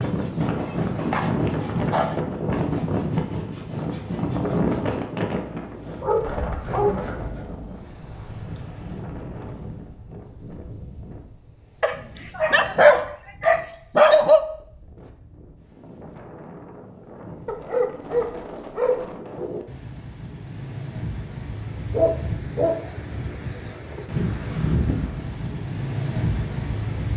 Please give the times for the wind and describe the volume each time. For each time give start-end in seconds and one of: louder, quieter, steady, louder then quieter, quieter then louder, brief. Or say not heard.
0.0-27.1 quieter then louder.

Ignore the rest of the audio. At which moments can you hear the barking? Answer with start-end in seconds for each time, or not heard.
0.7-2.2, 6.0-7.0, 11.8-14.4, 17.4-19.1, 21.9-22.8.